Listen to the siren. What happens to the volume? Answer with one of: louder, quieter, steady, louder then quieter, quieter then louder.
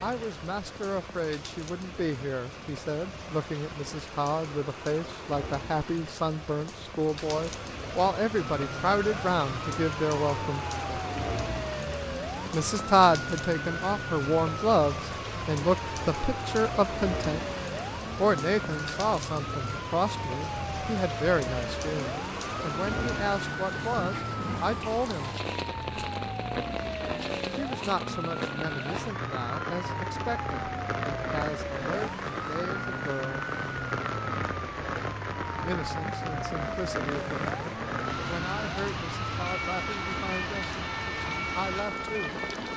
steady.